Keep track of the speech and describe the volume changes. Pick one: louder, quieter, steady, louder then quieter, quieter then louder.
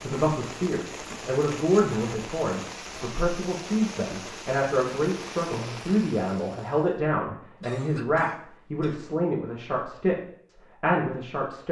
steady.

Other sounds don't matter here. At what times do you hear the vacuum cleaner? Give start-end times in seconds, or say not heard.
not heard.